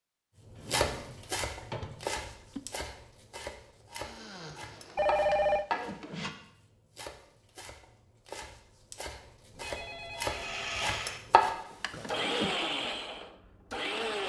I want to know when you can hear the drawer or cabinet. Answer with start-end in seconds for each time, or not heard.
0.6-2.1, 5.2-6.3, 11.4-12.6.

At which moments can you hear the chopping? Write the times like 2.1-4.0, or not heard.
0.6-11.6.